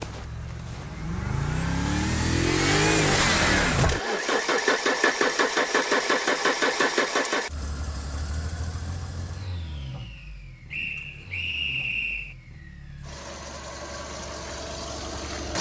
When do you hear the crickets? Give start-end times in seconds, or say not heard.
not heard.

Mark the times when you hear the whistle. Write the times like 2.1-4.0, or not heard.
10.7-12.3.